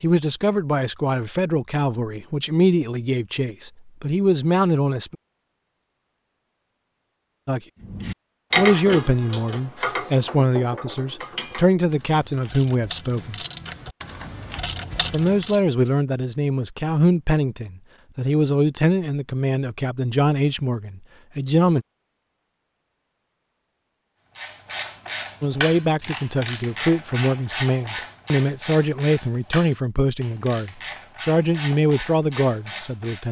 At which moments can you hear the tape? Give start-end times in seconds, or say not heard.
not heard.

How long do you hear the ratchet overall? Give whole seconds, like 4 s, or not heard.
17 s.